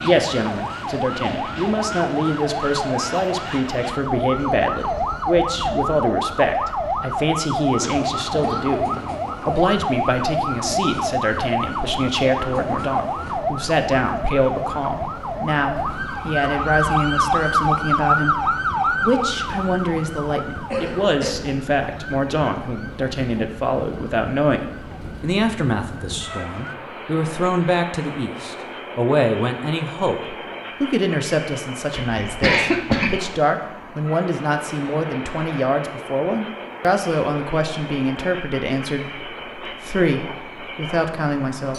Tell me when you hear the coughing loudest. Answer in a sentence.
The volume of the coughing peaks at 33 seconds.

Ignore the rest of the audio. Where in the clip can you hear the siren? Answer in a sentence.
The siren can be heard from 0.0 to 26.8 s.